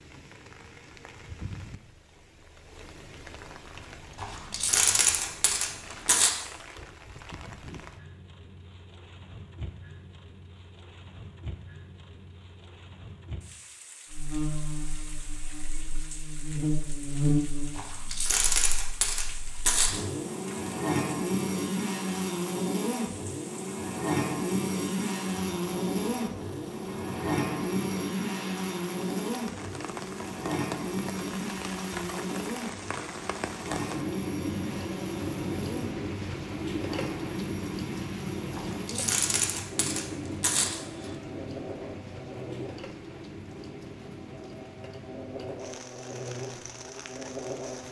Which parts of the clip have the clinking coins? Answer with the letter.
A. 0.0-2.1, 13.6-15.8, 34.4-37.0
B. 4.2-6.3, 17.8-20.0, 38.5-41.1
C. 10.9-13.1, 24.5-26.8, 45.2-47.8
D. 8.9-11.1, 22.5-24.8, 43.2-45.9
B.